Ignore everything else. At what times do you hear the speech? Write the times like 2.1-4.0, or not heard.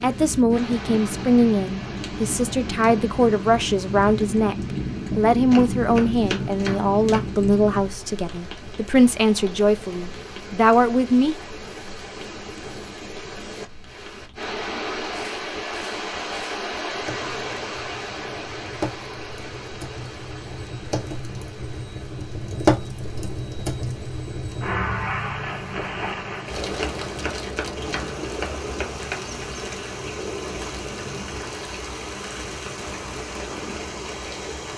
0.0-11.3.